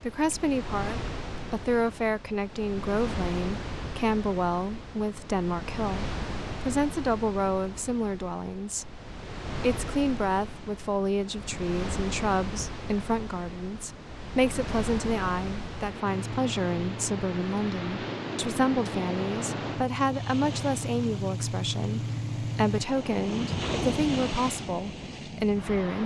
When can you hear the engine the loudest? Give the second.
22 s.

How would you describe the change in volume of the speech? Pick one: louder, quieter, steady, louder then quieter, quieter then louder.
steady.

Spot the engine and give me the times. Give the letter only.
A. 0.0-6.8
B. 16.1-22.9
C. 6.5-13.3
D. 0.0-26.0
B.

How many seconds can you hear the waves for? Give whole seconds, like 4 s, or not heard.
26 s.